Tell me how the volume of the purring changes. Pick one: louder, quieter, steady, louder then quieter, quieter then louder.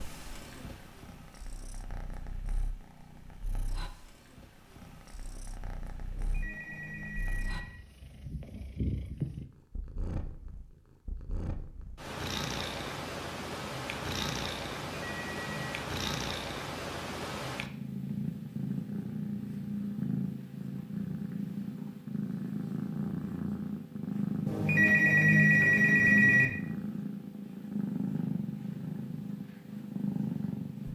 louder.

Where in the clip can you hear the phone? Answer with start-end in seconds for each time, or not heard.
6.1-7.8, 14.9-15.8, 24.4-26.5.